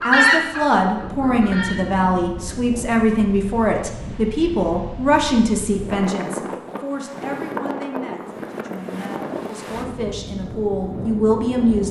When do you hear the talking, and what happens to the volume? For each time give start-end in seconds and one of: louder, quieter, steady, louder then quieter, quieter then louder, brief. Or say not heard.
0.0-11.8 quieter then louder.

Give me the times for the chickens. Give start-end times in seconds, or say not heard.
0.0-1.8.